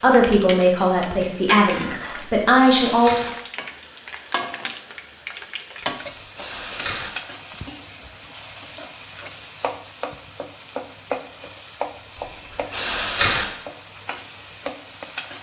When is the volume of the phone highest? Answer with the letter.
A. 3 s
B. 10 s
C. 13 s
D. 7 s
C.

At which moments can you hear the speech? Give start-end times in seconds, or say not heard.
0.0-3.1.